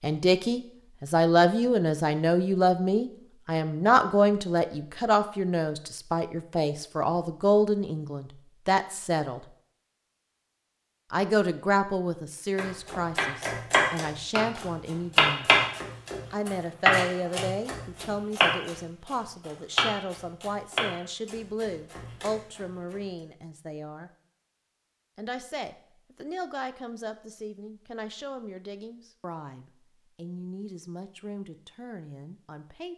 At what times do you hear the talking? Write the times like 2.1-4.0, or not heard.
0.0-9.4, 11.1-15.5, 16.3-24.1, 25.1-32.9.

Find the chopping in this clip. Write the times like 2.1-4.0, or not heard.
12.6-23.0.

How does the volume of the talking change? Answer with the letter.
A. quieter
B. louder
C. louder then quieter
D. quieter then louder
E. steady
A.